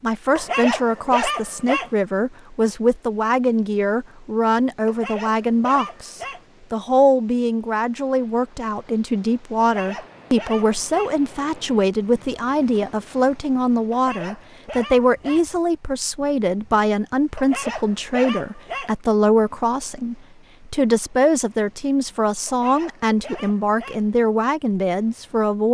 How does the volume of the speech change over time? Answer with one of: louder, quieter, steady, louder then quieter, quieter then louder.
steady.